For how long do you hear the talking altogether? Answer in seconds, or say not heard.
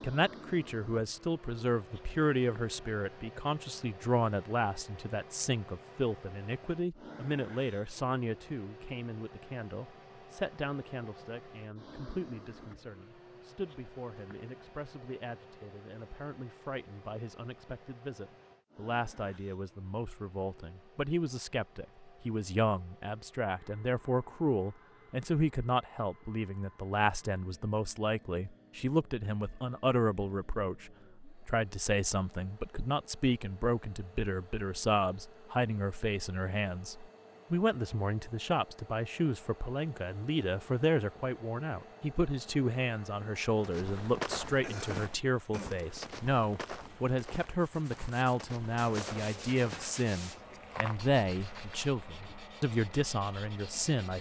54 s.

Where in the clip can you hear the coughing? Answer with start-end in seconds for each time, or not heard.
44.6-45.8.